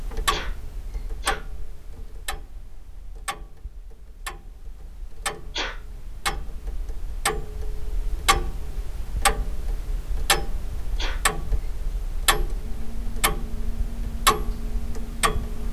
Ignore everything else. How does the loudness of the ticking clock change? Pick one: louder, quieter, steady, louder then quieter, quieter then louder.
louder.